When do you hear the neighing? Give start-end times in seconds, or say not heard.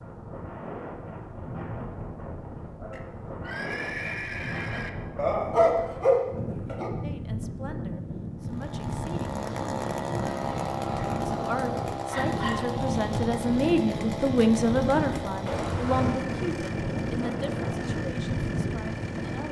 2.9-4.9, 9.2-11.2, 15.4-16.2.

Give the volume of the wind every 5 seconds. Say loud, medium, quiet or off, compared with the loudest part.
medium, loud, loud, loud.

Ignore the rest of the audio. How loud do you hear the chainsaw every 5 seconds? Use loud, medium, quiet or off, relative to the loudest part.
off, loud, loud, loud.